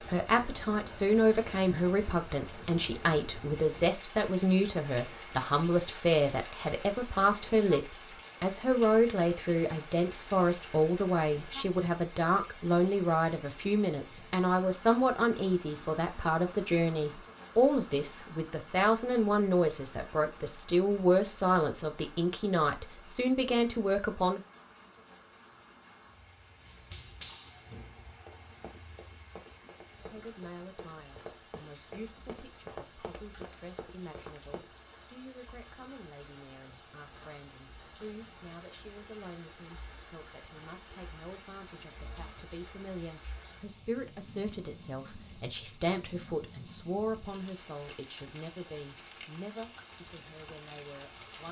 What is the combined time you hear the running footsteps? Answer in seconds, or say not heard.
8 s.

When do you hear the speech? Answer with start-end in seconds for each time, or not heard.
0.1-24.4, 29.9-51.4.